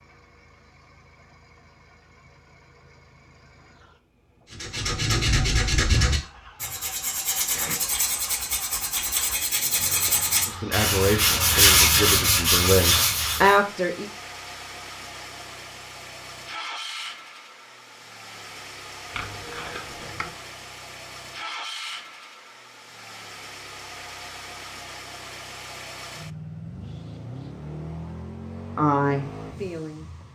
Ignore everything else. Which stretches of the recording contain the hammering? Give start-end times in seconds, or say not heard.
not heard.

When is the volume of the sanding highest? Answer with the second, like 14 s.
12 s.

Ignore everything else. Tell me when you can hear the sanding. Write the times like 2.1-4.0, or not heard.
4.5-13.6.